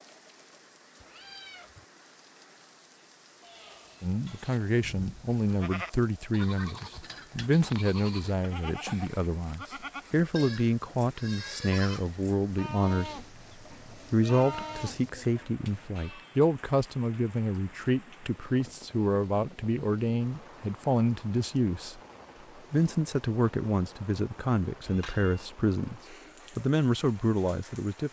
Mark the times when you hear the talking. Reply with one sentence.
The talking can be heard from 4.0 to 13.2 s, from 14.1 to 22.0 s and from 22.7 to 28.0 s.